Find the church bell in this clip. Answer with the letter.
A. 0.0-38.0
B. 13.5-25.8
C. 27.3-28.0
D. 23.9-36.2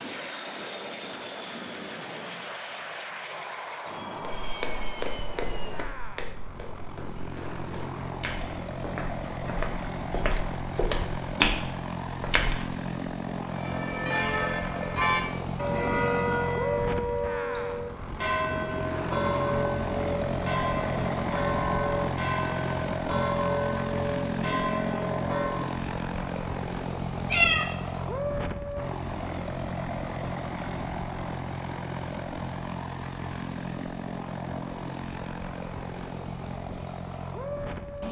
B.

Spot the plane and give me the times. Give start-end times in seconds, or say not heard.
0.0-38.0.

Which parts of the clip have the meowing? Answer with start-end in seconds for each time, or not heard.
27.3-28.0.